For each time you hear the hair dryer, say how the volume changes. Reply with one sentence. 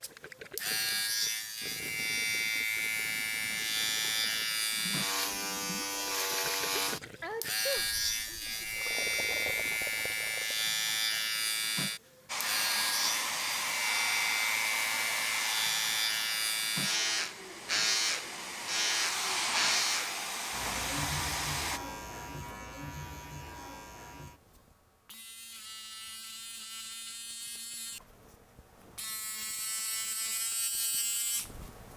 The hair dryer can be heard from 12.2 to 21.8 s, getting quieter then louder.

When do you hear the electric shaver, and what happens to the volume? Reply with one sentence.
You can hear the electric shaver from 0.0 to 31.9 s, getting quieter.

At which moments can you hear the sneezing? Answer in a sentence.
You can hear the sneezing from 7.2 to 8.7 s.